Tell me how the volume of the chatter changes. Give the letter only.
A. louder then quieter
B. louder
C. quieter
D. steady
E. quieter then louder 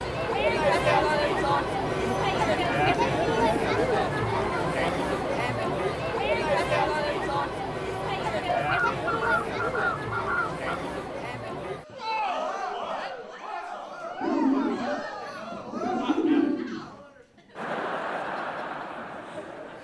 C.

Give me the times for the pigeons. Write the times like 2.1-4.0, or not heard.
1.9-3.6, 8.5-10.8, 14.2-16.9.